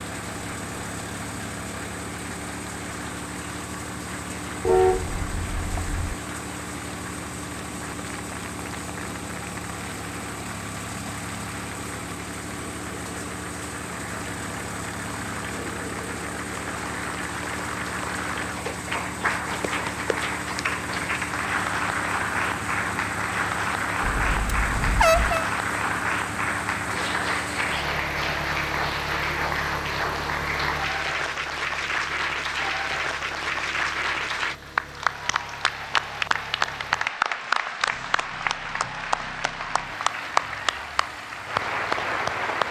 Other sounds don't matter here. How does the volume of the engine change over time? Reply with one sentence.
The volume of the engine goes down.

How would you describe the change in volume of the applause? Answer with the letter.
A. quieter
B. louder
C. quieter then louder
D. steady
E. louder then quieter
B.